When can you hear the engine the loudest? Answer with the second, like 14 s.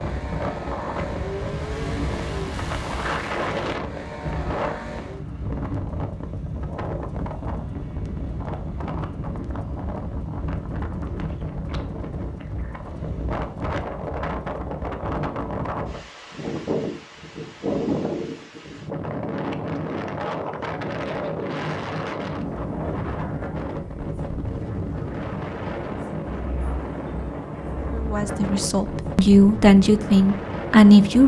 2 s.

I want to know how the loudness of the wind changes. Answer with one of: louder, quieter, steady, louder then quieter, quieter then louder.
steady.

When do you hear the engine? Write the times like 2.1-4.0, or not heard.
0.0-5.2.